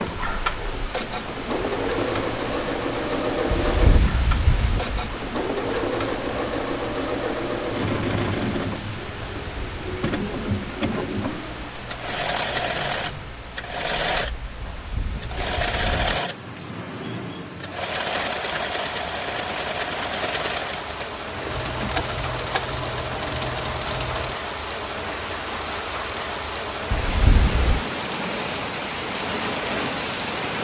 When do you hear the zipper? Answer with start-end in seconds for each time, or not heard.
3.5-4.8, 14.6-16.2, 26.9-27.9.